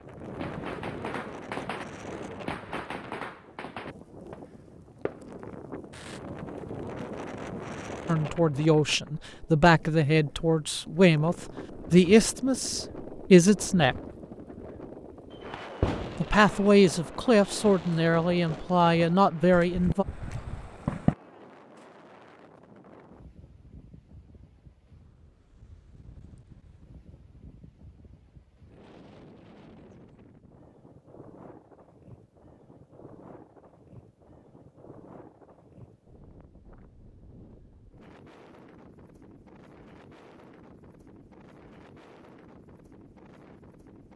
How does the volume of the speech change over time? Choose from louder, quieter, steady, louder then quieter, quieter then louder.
steady.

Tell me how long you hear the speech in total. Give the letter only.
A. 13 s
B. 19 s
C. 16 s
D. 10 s
D.